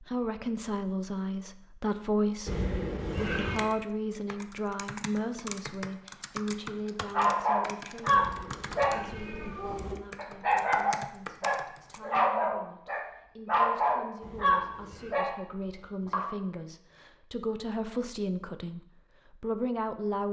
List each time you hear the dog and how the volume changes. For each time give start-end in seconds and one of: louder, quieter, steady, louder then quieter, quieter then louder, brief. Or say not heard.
7.1-16.3 steady.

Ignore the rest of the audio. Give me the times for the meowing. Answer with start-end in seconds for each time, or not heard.
2.5-3.7, 8.1-9.9, 14.2-15.2.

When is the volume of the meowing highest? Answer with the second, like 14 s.
3 s.